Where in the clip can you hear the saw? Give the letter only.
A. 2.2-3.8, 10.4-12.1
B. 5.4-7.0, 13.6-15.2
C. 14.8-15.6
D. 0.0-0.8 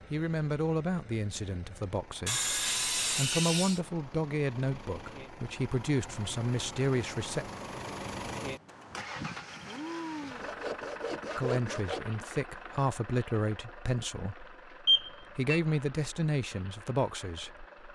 A.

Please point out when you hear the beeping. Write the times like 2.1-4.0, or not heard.
14.8-15.6.